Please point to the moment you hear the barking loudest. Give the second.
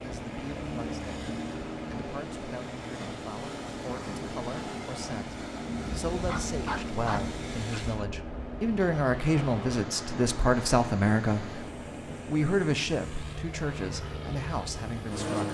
7 s.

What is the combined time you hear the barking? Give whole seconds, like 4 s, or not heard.
2 s.